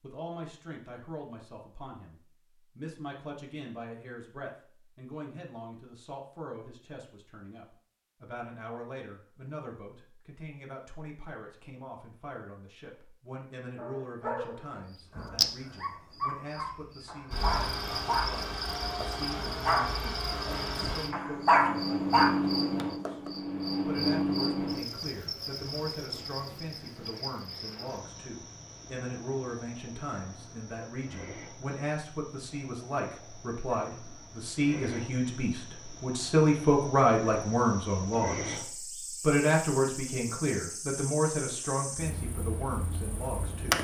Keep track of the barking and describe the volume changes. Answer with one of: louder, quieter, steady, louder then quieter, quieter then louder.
louder.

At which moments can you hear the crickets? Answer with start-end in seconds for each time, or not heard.
14.9-43.7.